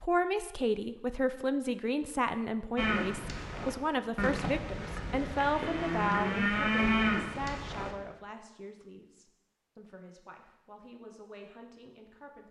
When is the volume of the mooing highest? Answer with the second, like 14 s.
7 s.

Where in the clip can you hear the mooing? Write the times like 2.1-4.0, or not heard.
2.8-8.0.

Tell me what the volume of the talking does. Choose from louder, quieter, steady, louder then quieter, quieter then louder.
quieter.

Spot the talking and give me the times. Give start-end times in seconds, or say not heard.
0.0-12.4.